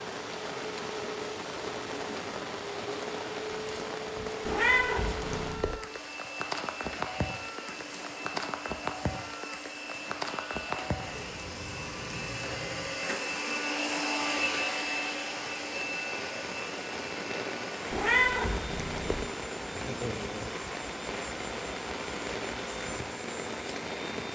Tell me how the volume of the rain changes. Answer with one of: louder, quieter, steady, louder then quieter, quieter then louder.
steady.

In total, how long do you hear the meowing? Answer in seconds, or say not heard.
3 s.